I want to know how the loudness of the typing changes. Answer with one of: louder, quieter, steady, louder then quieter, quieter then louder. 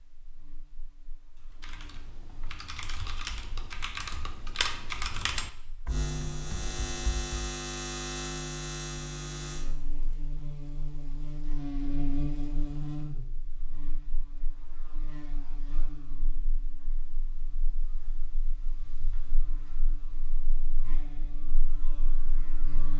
louder then quieter.